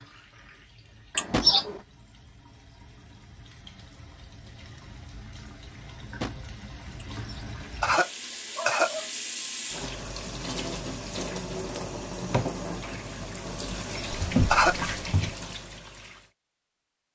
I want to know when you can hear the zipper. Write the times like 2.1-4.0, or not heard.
not heard.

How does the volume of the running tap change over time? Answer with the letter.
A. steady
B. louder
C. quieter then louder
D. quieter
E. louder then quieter
B.